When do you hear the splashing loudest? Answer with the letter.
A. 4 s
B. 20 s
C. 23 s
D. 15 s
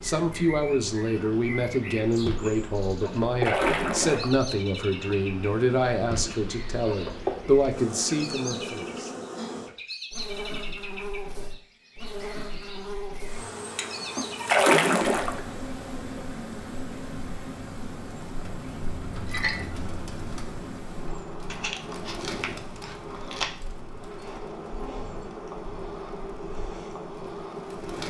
D.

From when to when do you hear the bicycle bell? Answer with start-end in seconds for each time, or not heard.
not heard.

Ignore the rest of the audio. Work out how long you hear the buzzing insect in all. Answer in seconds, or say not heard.
28 s.